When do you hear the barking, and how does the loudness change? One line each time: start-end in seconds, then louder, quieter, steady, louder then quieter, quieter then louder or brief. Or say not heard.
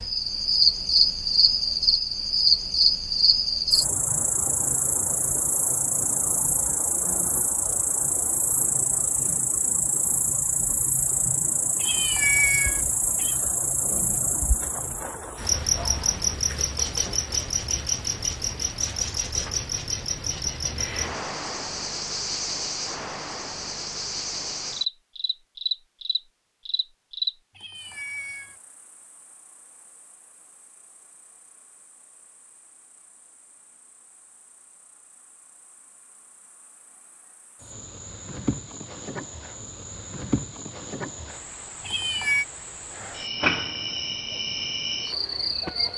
not heard.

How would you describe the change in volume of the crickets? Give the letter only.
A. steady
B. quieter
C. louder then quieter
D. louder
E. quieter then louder
E.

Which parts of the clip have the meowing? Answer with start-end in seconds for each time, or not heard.
11.8-13.3, 27.6-28.6, 41.9-42.5.